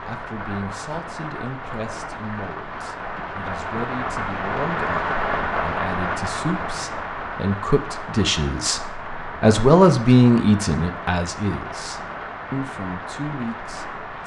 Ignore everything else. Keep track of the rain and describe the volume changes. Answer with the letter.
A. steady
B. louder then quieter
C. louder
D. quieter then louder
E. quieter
B.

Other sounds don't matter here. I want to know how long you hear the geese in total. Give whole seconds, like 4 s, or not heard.
not heard.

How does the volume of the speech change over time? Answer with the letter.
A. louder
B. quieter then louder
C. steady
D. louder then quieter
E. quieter
D.